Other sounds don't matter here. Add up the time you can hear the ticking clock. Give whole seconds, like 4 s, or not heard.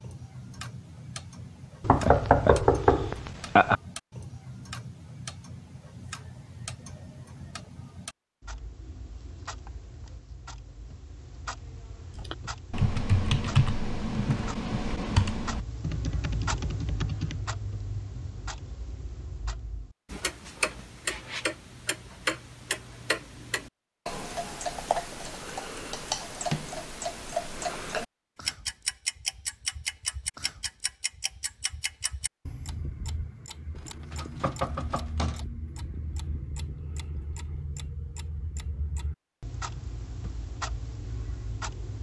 42 s.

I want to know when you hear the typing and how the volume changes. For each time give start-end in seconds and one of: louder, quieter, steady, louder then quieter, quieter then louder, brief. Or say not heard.
12.2-17.4 quieter.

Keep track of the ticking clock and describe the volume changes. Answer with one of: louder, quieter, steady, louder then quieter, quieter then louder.
louder then quieter.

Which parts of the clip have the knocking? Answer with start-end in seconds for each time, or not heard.
1.8-3.8, 33.8-35.5.